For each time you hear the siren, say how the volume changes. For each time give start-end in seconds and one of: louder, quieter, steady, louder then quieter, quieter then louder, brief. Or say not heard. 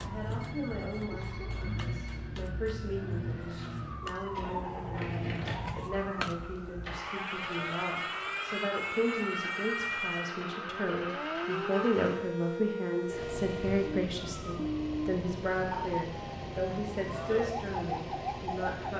0.0-18.9 louder.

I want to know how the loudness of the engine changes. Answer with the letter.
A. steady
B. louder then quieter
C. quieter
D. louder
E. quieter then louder
A.